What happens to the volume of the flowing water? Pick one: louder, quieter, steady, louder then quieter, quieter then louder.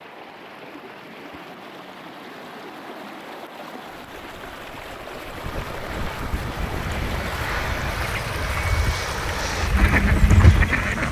louder.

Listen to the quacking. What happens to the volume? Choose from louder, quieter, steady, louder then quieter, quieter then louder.
louder.